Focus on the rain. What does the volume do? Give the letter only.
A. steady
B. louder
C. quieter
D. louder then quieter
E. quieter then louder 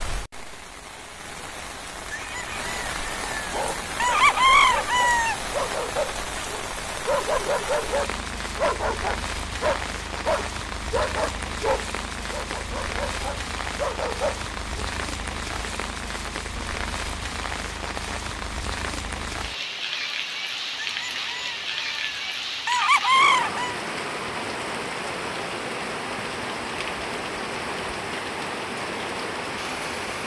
A.